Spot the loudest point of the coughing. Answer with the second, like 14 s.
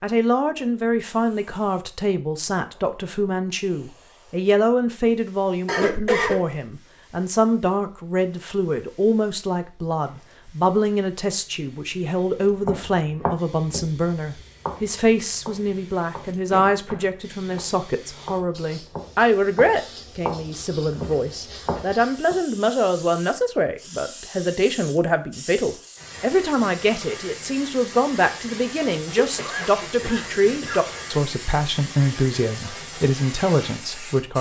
6 s.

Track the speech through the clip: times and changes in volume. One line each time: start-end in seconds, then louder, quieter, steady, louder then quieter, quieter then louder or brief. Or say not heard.
0.0-34.3 steady.